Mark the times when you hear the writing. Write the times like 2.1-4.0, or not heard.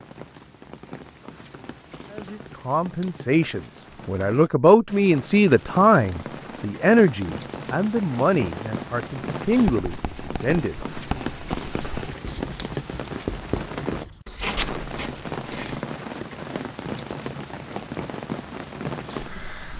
9.4-15.8.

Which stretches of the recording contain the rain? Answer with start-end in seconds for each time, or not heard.
0.0-19.7.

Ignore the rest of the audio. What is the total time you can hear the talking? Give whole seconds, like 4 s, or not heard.
9 s.